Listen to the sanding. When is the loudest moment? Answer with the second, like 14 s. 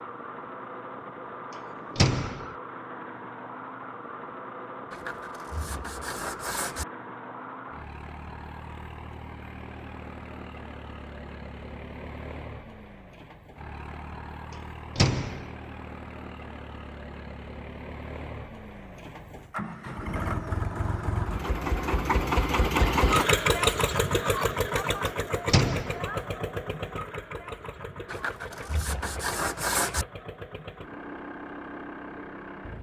30 s.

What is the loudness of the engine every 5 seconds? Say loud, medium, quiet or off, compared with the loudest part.
quiet, quiet, quiet, quiet, loud, medium, quiet.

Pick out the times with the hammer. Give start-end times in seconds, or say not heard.
not heard.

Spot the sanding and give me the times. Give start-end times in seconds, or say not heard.
4.9-6.8, 28.1-30.1.